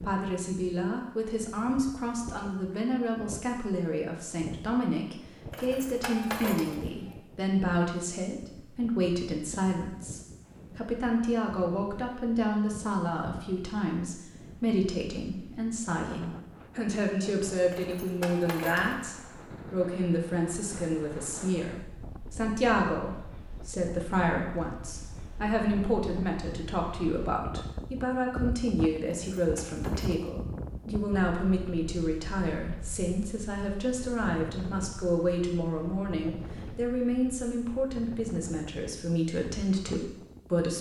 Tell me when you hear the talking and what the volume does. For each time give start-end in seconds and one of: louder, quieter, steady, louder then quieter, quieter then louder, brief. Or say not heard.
0.0-40.7 steady.